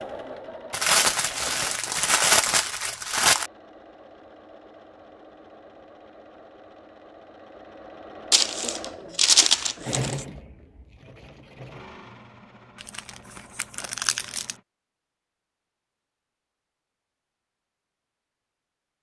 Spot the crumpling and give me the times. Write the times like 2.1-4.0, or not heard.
0.7-3.5, 8.3-10.2, 12.8-14.6.